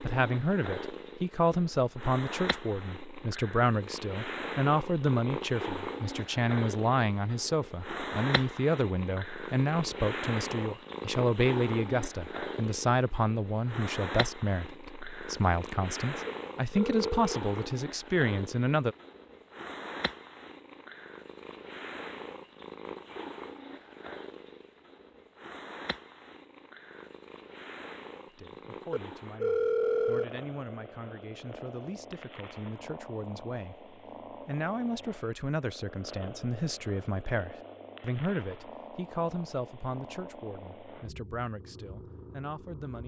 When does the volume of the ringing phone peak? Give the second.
30 s.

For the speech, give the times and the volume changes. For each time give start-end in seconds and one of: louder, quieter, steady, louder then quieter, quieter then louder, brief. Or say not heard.
0.0-18.9 steady
28.3-43.0 louder then quieter.